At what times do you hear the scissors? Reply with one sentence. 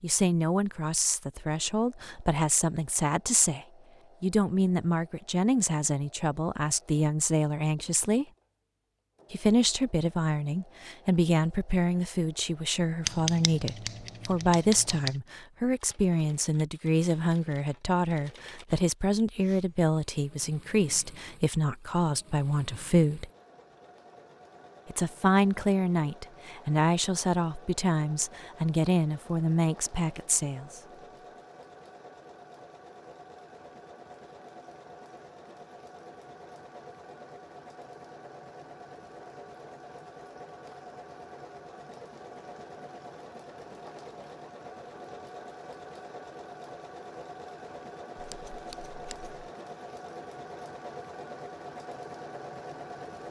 You can hear the scissors from 13.1 to 15.2 s and from 48.1 to 49.4 s.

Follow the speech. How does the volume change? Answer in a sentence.
The loudness of the speech stays about the same.